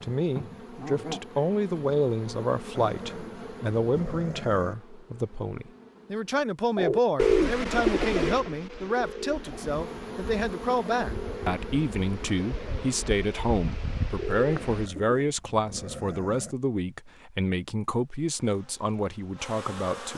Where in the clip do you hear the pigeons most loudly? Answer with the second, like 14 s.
7 s.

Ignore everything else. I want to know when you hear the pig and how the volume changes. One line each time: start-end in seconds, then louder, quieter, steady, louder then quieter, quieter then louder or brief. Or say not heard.
not heard.